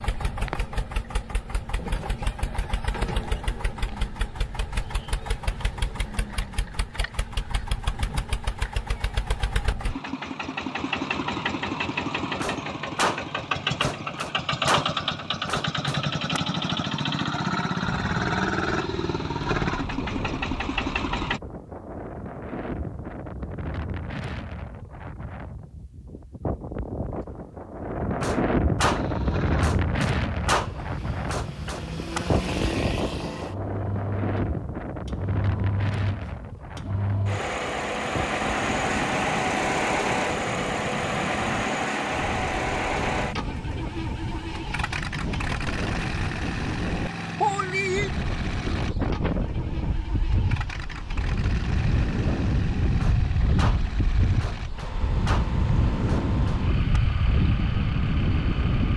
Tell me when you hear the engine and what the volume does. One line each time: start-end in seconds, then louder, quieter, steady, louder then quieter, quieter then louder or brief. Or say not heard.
0.0-21.4 louder
28.9-58.9 louder then quieter.